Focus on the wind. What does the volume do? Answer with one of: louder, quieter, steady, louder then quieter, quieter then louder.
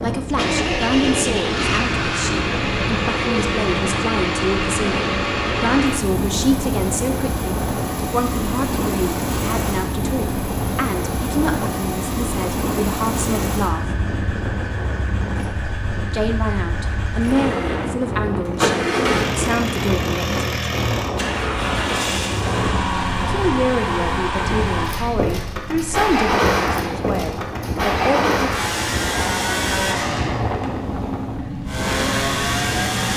steady.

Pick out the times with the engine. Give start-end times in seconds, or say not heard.
0.1-33.1.